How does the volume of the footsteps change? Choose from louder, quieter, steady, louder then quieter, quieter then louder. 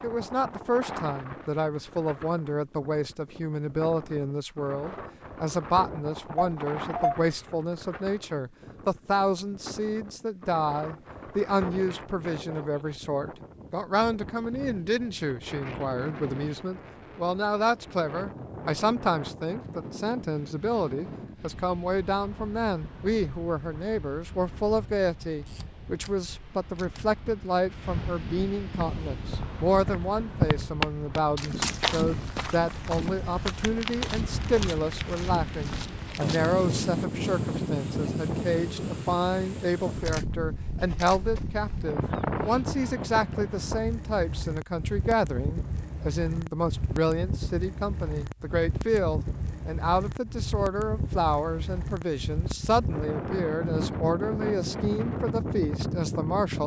quieter.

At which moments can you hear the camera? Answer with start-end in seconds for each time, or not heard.
6.3-7.3, 25.4-27.0, 40.0-41.3.